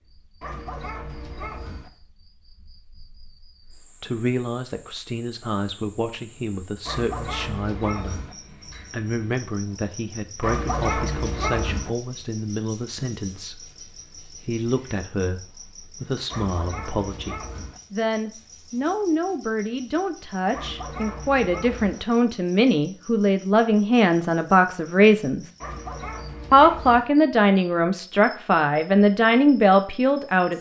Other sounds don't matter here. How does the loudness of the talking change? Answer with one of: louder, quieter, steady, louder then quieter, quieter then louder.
louder.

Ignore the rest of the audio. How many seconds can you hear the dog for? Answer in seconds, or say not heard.
9 s.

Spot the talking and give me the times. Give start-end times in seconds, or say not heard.
3.8-8.2, 8.9-25.5, 26.5-30.5.